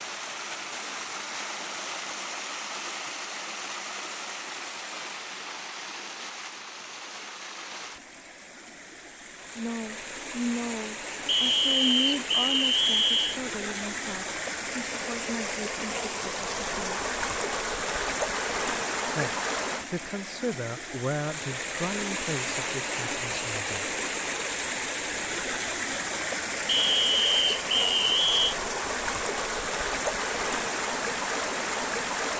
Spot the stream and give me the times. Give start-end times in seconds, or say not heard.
0.0-32.3.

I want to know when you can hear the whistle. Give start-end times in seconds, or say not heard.
11.2-13.4, 26.6-28.6.